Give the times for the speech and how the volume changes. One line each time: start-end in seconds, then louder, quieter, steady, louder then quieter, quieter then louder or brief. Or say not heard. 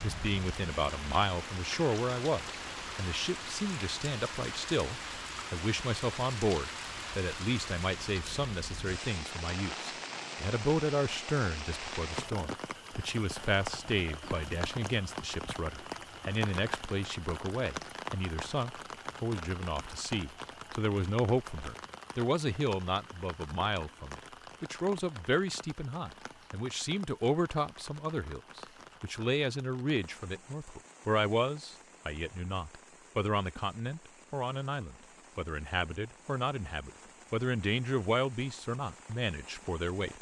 0.0-40.1 steady.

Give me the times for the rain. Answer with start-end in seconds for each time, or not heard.
0.0-40.1.